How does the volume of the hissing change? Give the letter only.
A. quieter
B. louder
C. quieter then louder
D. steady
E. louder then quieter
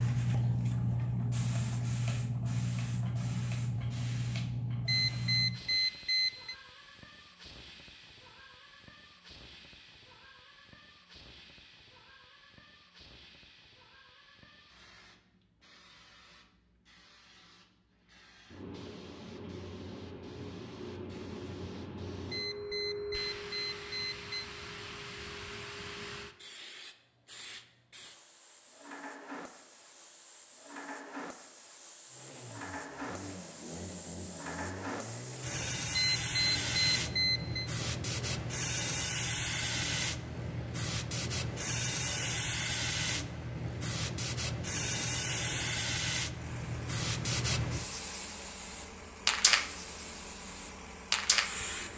C.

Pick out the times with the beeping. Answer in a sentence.
The beeping can be heard from 4.8 to 6.5 s, from 22.3 to 24.4 s and from 36.0 to 37.7 s.